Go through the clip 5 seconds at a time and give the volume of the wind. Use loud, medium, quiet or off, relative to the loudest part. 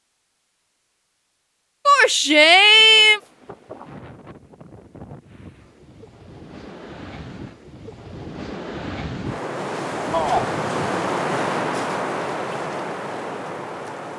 quiet, medium, loud.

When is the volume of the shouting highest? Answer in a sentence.
The volume of the shouting peaks at 3 seconds.